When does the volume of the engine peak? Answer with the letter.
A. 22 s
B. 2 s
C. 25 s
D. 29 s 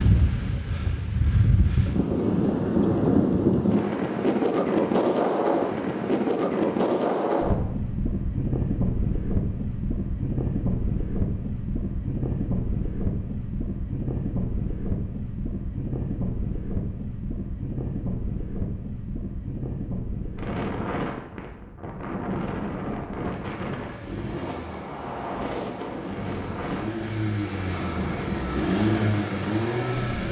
D.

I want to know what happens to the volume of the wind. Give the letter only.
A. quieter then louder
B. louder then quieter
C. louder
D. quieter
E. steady
D.